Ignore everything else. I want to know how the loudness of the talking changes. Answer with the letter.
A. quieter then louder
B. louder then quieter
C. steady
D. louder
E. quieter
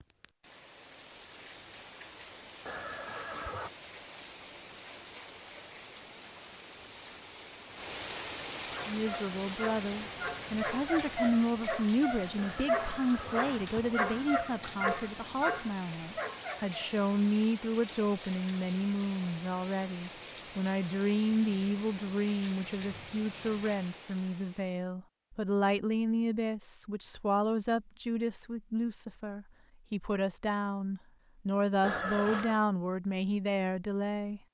C.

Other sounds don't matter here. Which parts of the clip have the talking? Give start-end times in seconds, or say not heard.
8.8-34.4.